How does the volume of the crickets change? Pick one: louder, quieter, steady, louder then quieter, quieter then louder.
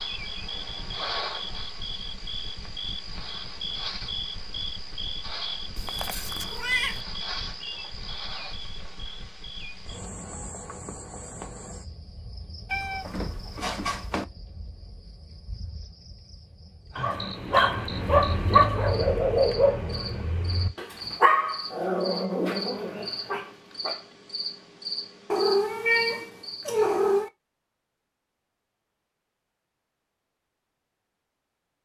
quieter then louder.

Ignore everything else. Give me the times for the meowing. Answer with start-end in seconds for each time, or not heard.
5.8-7.0, 12.7-14.2, 25.3-27.3.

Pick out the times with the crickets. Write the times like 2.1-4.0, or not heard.
0.0-26.7.